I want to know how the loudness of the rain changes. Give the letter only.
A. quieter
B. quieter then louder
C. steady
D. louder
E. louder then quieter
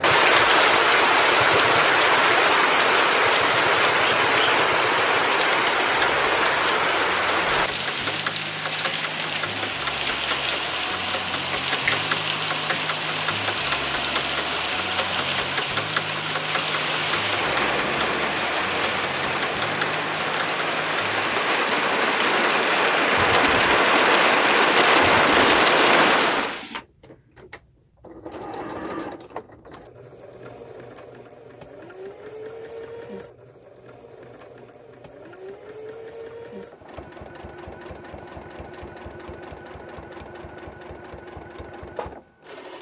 B.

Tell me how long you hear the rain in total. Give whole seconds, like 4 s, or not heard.
27 s.